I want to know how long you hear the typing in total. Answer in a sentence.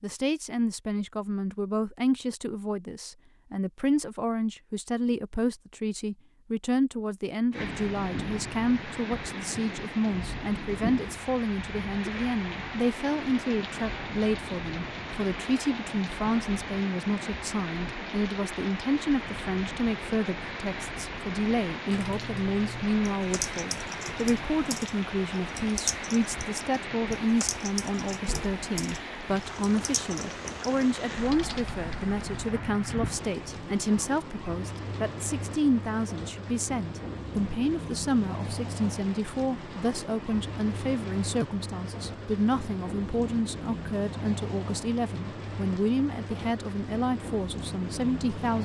You can hear the typing for 11 seconds altogether.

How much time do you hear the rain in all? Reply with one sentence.
You can hear the rain for 41 seconds altogether.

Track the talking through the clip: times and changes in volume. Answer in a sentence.
The talking can be heard from 0.0 to 48.6 s, at a steady volume.